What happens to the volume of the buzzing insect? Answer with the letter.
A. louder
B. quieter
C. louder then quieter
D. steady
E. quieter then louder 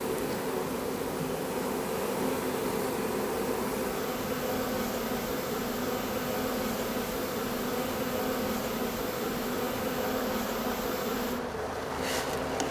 D.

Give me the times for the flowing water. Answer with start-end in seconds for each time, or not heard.
0.0-12.6.